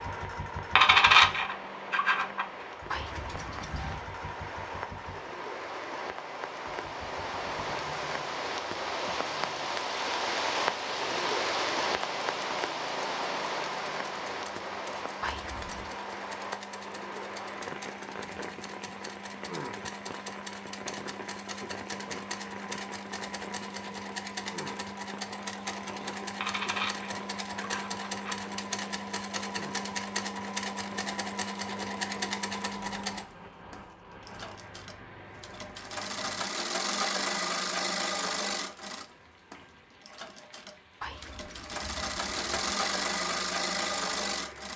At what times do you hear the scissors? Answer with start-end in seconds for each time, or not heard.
2.9-4.1, 15.2-16.0, 41.0-42.8.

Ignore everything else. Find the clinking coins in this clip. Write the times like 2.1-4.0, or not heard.
0.8-2.5, 26.4-28.4.